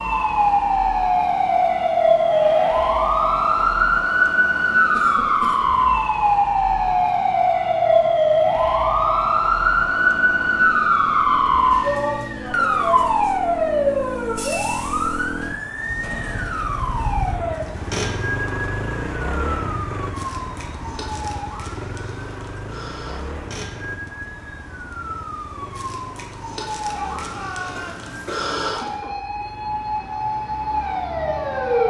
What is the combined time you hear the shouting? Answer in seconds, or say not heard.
3 s.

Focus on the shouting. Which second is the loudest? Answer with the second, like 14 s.
12 s.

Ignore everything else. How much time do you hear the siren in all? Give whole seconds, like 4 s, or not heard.
32 s.